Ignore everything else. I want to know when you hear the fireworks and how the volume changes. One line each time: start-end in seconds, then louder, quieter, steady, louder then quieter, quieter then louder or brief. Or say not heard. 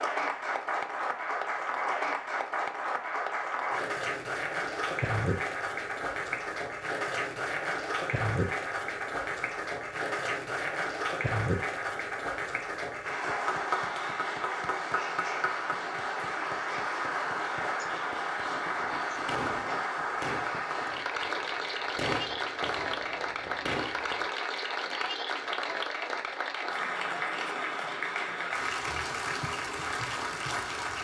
18.8-24.2 quieter then louder.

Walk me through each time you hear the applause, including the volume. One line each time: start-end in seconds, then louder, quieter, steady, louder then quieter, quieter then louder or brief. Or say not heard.
0.0-30.9 steady.